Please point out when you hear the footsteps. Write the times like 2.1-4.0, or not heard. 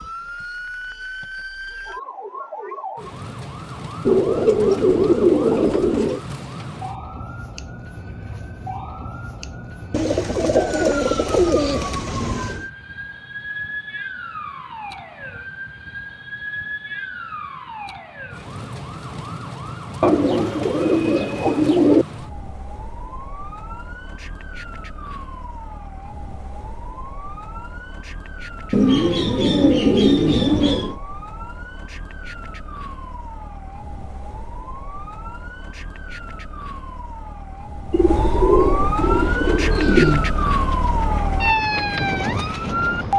not heard.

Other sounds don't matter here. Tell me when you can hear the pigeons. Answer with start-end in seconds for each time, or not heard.
4.0-6.2, 9.9-12.7, 20.0-22.1, 28.7-30.9, 37.9-40.3.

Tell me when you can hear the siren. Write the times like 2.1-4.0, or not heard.
0.0-43.1.